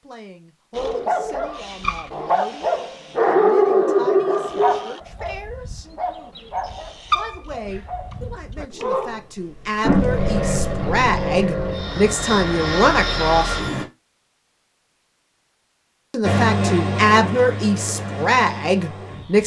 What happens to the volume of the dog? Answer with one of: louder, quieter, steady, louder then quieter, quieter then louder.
louder then quieter.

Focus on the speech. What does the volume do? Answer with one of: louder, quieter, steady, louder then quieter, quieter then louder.
louder.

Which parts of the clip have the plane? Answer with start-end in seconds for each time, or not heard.
9.8-13.8, 16.2-19.4.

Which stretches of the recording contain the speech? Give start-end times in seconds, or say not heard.
0.0-5.8, 7.2-13.6, 16.1-19.4.